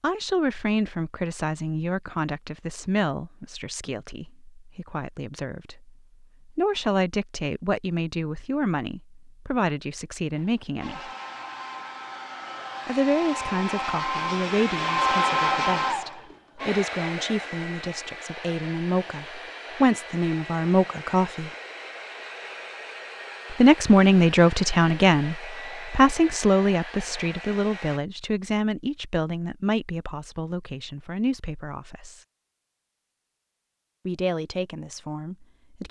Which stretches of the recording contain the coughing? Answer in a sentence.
The coughing can't be heard in this clip.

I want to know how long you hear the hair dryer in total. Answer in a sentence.
The hair dryer can be heard for 18 seconds in total.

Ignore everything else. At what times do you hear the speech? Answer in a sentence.
The speech can be heard from 0.0 to 11.1 s, from 12.8 to 21.5 s, from 23.5 to 32.2 s and from 34.0 to 35.8 s.